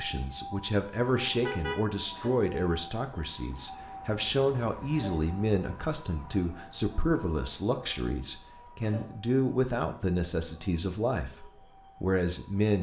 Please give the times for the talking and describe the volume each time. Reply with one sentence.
You can hear the talking from 0.0 to 12.7 s, at a steady volume.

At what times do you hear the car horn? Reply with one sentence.
The car horn can be heard from 1.4 to 2.3 s.